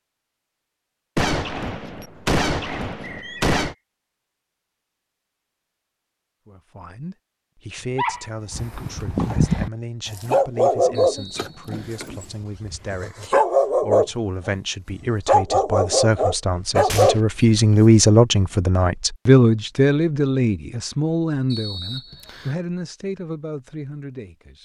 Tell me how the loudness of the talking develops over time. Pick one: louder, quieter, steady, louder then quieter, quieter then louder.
louder then quieter.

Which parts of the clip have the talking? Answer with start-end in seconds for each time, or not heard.
6.5-24.5.